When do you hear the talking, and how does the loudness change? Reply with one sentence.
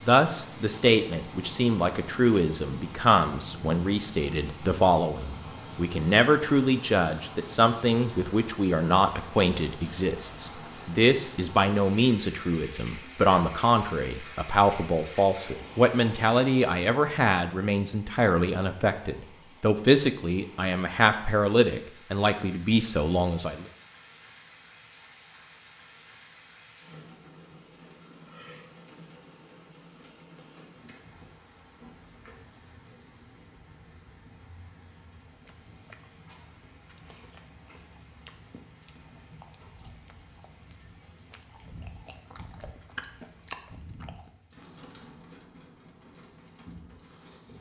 You can hear the talking from 0.1 to 23.6 s, at a steady volume.